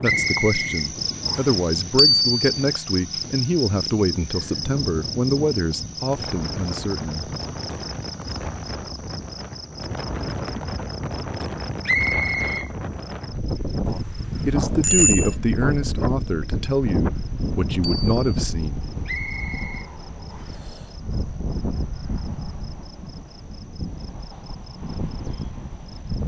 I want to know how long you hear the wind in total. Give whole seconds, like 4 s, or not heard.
26 s.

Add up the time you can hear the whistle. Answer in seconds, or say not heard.
4 s.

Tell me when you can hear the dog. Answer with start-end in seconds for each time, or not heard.
not heard.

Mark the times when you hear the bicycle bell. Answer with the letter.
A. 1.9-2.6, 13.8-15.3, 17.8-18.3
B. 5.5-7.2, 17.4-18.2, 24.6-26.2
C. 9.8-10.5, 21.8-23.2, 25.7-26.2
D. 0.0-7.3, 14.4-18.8
A.